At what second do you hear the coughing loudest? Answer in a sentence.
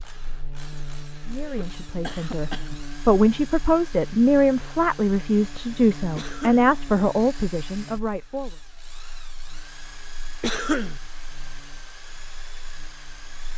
The volume of the coughing peaks at 11 seconds.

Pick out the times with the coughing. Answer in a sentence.
The coughing can be heard from 1.4 to 2.8 s, from 6.2 to 6.7 s and from 10.4 to 11.0 s.